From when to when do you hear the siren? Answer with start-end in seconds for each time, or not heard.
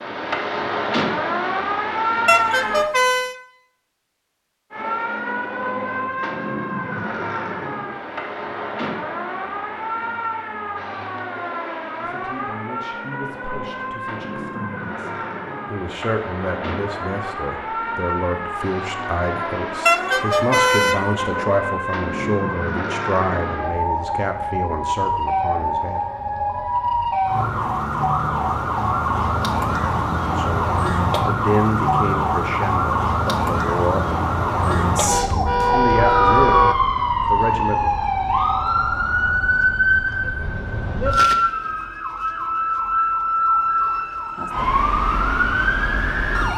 0.0-2.9, 4.7-46.5.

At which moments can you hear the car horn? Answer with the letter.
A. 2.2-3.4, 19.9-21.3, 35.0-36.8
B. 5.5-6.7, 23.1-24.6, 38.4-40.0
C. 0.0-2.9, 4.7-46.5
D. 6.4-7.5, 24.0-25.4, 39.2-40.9
A.